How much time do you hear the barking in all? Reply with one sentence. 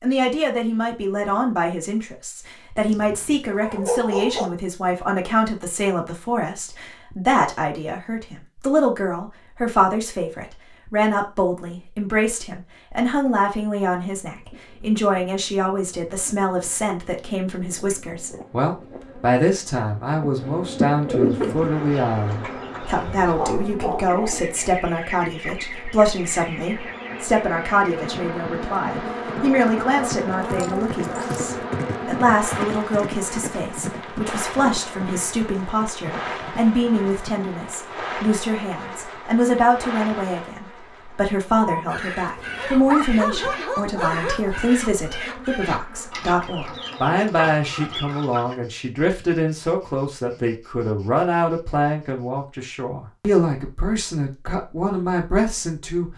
The barking can be heard for 6 seconds in total.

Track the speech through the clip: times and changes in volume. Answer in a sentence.
The speech can be heard from 0.0 to 56.1 s, at a steady volume.